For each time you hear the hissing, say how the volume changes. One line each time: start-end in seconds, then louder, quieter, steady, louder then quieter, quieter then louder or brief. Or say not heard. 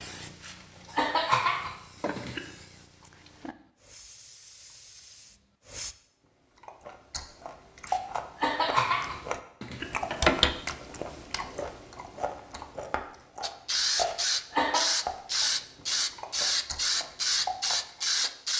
0.0-6.0 louder then quieter
13.4-18.5 steady.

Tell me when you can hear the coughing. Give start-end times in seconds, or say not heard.
0.4-2.4, 7.8-9.8, 14.0-14.9.